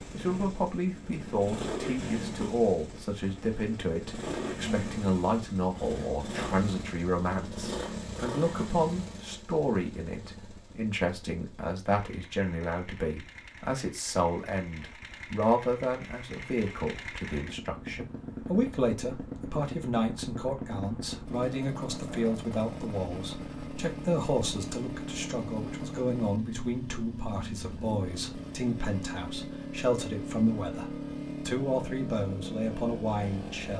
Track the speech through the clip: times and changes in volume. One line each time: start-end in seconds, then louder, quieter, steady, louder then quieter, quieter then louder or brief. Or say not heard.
0.1-33.7 steady.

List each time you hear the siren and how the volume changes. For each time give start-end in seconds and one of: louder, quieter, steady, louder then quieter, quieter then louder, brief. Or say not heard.
not heard.